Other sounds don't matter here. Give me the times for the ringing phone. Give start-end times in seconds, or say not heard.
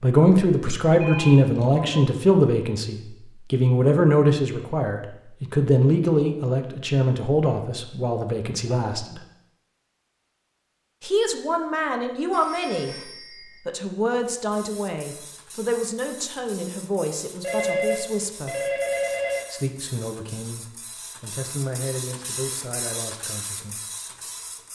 1.0-2.1, 12.3-13.6, 17.4-19.4.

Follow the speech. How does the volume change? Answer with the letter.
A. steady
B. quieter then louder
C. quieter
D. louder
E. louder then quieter
C.